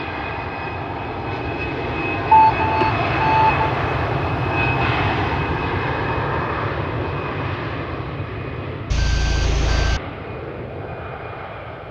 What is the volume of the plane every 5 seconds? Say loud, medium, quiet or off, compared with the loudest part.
loud, loud, medium.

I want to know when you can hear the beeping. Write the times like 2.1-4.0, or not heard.
2.3-3.5, 8.9-10.0.